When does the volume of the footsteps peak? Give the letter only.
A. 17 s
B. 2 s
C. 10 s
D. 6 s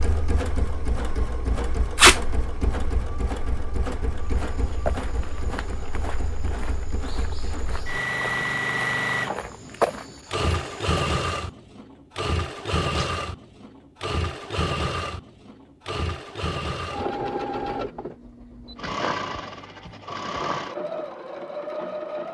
C.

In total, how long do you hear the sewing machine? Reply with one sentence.
The sewing machine can be heard for 22 seconds in total.